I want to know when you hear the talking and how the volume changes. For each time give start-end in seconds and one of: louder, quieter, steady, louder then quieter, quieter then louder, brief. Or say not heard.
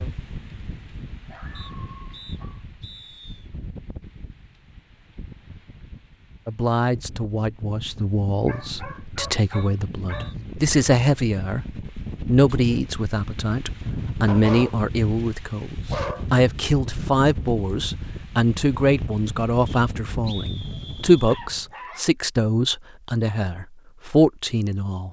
6.5-25.0 louder.